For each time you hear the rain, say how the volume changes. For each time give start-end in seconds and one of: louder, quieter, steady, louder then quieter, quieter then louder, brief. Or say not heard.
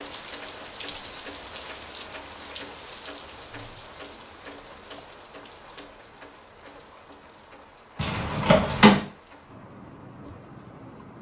0.0-11.1 quieter.